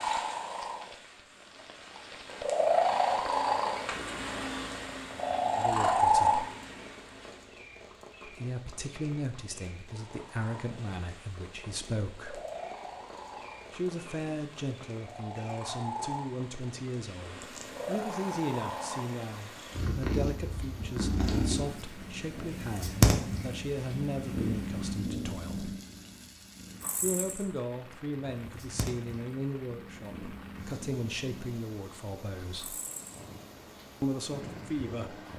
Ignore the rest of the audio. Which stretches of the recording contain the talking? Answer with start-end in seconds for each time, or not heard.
5.5-6.5, 8.2-12.4, 13.7-25.8, 27.0-32.8, 34.0-35.1.